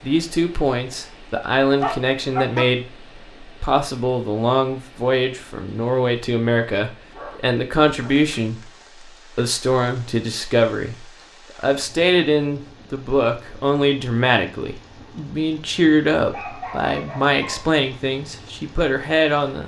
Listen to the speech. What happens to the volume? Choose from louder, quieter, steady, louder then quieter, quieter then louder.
steady.